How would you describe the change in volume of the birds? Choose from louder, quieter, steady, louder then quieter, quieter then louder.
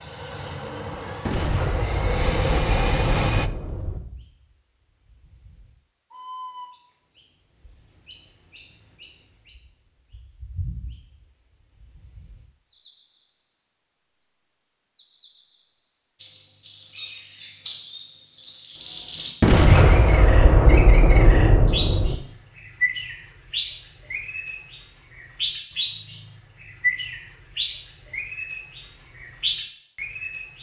louder.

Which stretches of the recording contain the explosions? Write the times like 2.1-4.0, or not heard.
1.2-4.0, 19.4-22.1.